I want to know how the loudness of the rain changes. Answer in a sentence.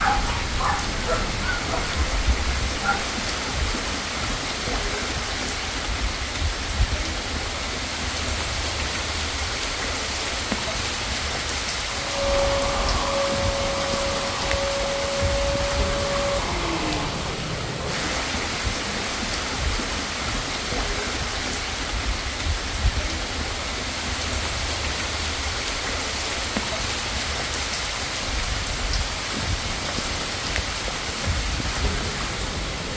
The loudness of the rain stays about the same.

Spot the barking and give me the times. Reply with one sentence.
The barking can be heard from 0.0 to 3.1 s.